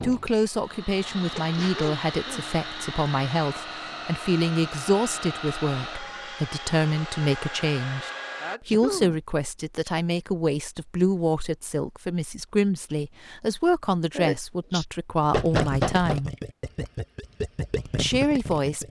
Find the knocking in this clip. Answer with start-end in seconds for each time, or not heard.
15.3-16.2.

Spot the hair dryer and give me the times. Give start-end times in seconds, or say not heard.
0.0-8.6.